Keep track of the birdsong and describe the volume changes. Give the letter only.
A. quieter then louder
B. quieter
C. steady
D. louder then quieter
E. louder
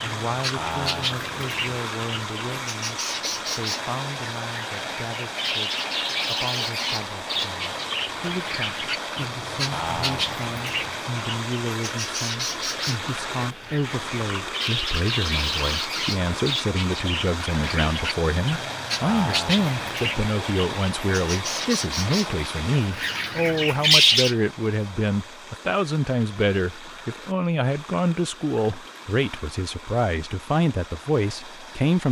E.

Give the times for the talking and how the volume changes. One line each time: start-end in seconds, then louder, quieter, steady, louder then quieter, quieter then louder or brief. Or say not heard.
0.0-32.0 louder.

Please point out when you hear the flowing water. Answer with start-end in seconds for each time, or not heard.
0.0-32.0.